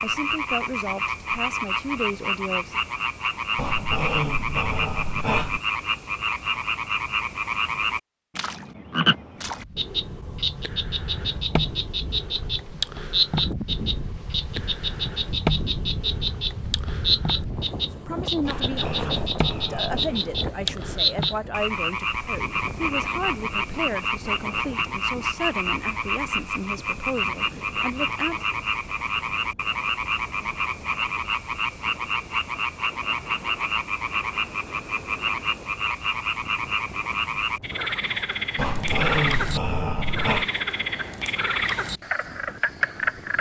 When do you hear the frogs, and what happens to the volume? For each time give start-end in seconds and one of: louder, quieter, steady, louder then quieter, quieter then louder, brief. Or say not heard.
0.0-43.3 steady.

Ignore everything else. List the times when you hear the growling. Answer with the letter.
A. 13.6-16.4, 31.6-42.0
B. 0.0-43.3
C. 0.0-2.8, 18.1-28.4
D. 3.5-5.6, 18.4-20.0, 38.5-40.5
D.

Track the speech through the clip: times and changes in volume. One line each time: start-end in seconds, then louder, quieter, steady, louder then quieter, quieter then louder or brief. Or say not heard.
0.0-2.8 brief
18.1-28.4 steady.